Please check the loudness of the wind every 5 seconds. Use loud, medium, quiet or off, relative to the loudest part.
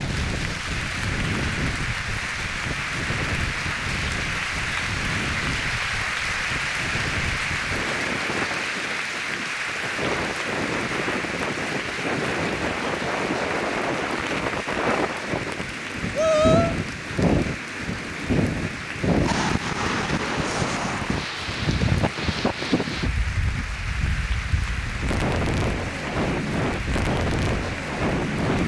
medium, medium, loud, loud, loud, loud.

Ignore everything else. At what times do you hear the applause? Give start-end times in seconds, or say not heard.
0.0-28.6.